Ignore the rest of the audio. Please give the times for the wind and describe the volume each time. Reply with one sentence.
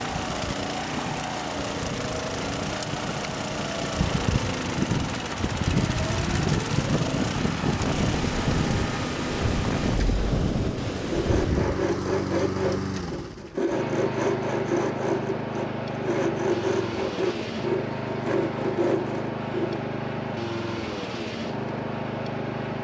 The wind can be heard from 0.0 to 11.9 s, getting louder.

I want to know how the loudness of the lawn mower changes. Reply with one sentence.
The loudness of the lawn mower stays about the same.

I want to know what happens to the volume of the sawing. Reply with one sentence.
The volume of the sawing stays about the same.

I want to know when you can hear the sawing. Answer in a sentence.
The sawing can be heard from 11.1 to 19.8 s.